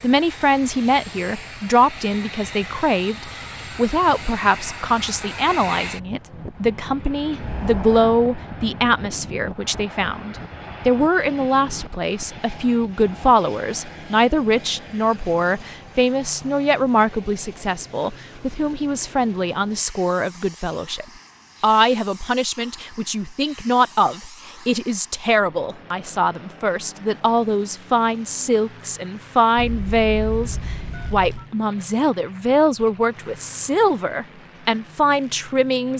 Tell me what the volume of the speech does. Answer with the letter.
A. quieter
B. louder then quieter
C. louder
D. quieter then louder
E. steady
E.